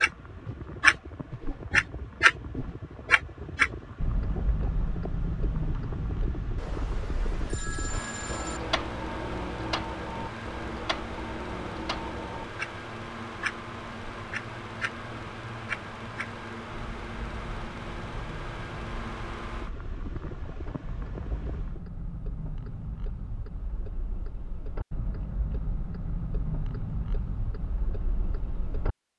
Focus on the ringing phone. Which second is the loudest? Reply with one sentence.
The loudest moment of the ringing phone is at 8 seconds.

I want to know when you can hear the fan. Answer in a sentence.
The fan can be heard from 0.0 to 21.8 s.